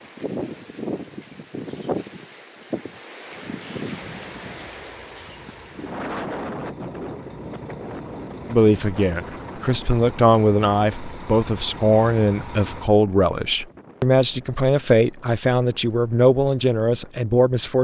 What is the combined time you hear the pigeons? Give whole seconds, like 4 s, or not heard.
not heard.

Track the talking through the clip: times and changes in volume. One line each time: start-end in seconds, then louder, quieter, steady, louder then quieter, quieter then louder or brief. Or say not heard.
8.5-17.7 steady.